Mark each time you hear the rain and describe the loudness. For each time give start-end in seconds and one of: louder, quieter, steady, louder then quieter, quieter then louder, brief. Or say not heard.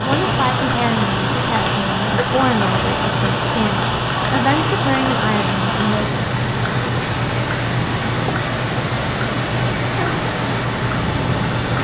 0.0-11.8 steady.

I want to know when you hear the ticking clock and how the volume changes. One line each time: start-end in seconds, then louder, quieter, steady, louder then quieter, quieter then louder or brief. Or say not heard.
0.0-11.8 steady.